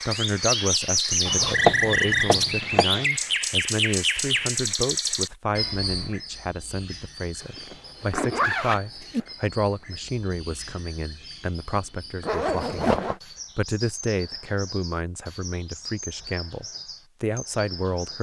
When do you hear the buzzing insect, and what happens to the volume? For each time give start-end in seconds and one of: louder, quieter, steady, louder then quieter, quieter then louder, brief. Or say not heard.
not heard.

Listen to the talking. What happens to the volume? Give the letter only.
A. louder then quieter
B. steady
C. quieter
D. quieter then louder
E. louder
B.